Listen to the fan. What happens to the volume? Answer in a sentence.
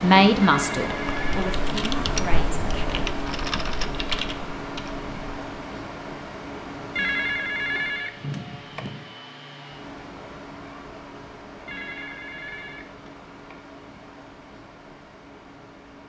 The loudness of the fan goes down.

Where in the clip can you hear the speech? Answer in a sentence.
The speech can be heard from 0.0 to 2.9 s.